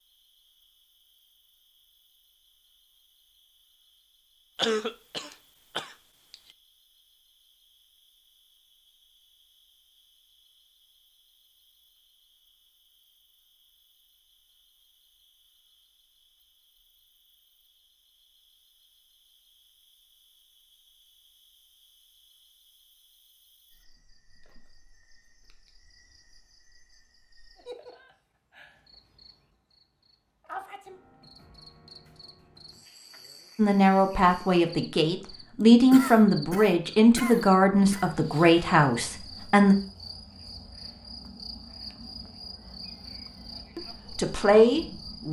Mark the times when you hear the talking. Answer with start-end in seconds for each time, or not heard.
33.5-39.8, 43.8-45.2.